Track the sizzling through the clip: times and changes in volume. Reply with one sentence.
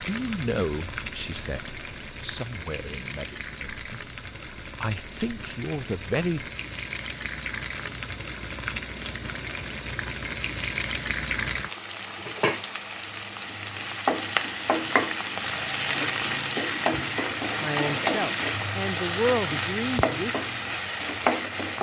The sizzling can be heard from 0.0 to 21.7 s, getting louder.